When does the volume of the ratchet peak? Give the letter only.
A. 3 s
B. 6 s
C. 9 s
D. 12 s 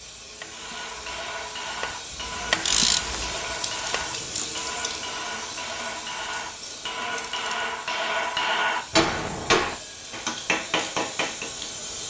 A.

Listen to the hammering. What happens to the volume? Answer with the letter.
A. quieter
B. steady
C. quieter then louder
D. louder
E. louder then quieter
D.